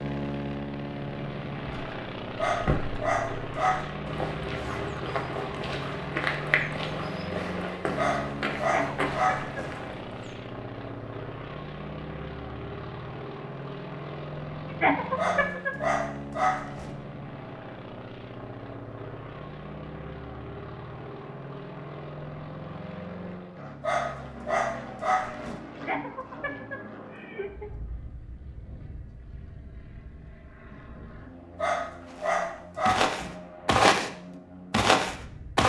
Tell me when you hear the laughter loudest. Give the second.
15 s.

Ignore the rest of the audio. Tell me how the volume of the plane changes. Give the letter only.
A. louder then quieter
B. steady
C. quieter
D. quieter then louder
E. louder
C.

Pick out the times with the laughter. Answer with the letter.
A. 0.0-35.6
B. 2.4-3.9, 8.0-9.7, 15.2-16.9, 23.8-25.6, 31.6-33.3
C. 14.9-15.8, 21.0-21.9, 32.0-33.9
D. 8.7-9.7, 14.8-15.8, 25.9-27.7
D.